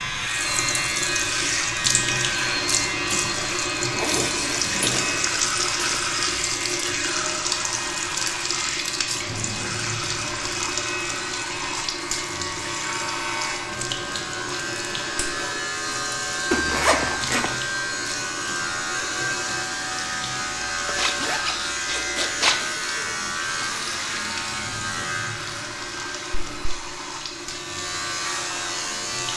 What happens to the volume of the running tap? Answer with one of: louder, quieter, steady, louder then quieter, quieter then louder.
quieter.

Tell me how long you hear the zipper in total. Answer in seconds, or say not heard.
5 s.